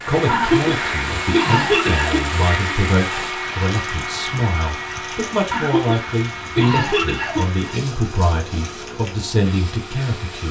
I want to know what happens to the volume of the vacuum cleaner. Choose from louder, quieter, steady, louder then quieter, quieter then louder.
quieter.